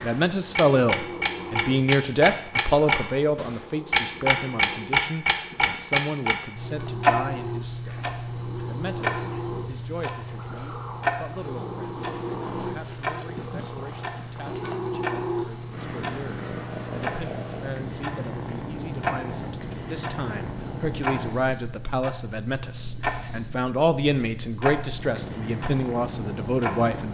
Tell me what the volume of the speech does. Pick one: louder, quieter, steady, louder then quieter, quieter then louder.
quieter then louder.